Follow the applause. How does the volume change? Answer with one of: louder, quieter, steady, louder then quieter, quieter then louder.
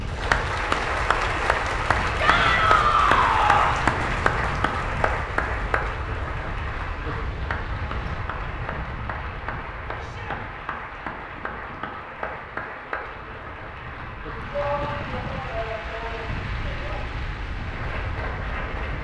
quieter.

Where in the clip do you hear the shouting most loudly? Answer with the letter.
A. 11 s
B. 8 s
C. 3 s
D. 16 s
C.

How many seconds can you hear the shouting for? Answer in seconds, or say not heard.
5 s.